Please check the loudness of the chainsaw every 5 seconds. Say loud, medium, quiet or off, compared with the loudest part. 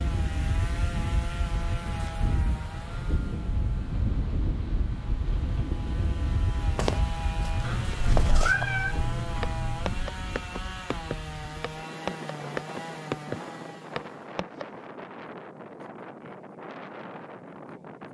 loud, loud, loud, off.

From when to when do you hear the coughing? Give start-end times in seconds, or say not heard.
not heard.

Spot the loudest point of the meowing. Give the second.
9 s.